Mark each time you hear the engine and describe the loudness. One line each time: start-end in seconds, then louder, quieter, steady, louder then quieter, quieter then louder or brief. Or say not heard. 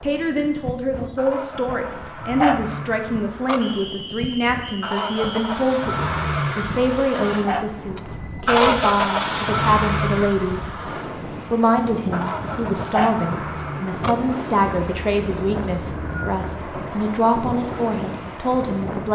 0.0-19.1 louder then quieter.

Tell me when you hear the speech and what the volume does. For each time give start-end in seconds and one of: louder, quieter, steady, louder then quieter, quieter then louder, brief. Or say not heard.
0.0-10.9 steady
11.5-19.1 steady.